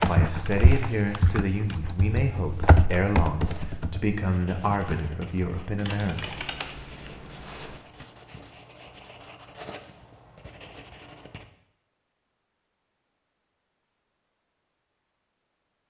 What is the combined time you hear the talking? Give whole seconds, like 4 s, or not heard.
6 s.